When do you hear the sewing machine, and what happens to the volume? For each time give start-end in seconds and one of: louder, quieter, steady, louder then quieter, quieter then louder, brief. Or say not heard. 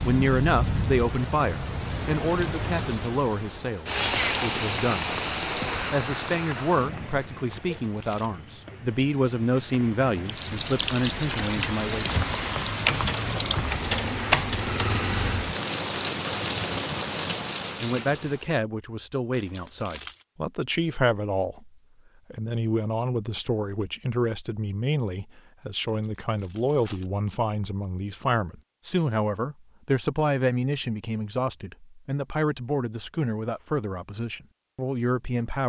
not heard.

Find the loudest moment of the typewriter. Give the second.
14 s.